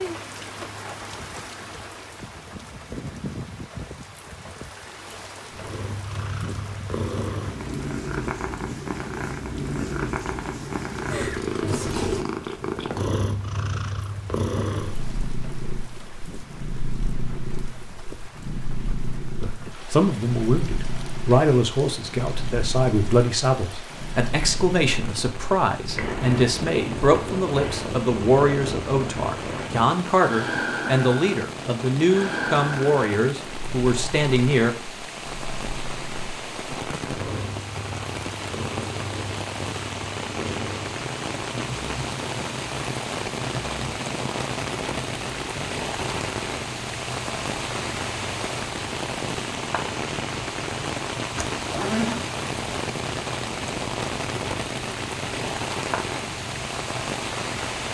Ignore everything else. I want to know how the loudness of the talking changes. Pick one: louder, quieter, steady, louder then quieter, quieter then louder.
steady.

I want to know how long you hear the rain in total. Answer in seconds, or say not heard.
58 s.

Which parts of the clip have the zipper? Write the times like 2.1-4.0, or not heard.
51.4-52.2.